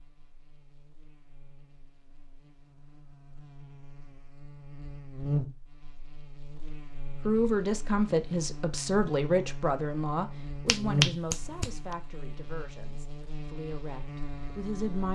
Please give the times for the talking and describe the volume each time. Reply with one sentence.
You can hear the talking from 7.2 to 15.1 s, getting quieter.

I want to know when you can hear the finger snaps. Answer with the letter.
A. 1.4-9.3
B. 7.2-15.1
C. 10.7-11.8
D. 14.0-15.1
C.